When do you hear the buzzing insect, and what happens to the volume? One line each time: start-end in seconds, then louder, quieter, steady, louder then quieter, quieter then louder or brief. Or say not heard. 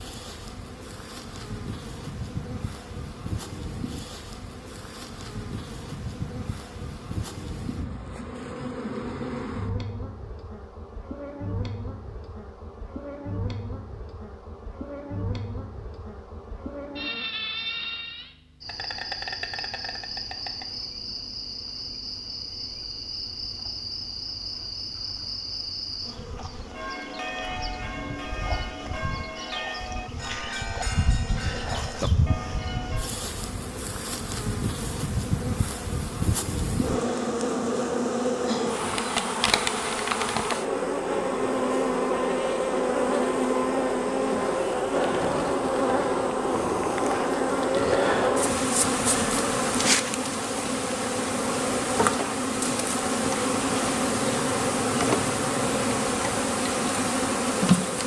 0.0-58.0 louder.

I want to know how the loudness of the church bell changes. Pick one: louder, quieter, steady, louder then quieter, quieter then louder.
steady.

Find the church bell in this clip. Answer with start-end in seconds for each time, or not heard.
26.6-33.1.